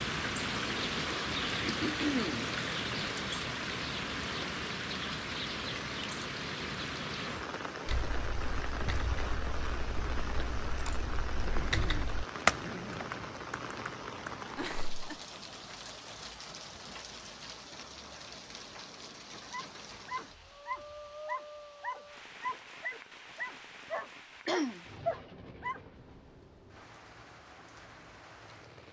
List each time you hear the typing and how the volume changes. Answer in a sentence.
You can hear the typing from 7.8 to 14.4 s, getting louder then quieter.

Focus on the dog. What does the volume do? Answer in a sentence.
The volume of the dog goes up.